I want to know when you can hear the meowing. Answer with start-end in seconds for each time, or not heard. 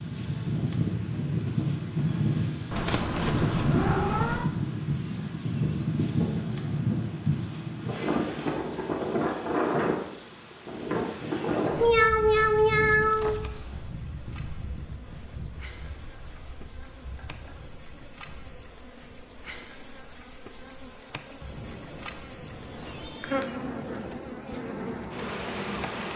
2.7-4.5, 11.8-13.5, 23.0-23.5.